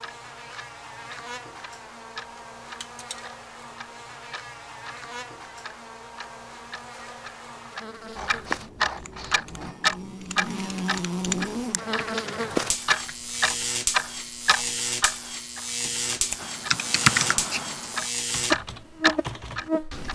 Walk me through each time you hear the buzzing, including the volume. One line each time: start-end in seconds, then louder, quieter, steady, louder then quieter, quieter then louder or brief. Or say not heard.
0.0-20.1 louder.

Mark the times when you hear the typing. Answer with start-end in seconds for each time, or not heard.
8.9-13.2, 16.4-20.1.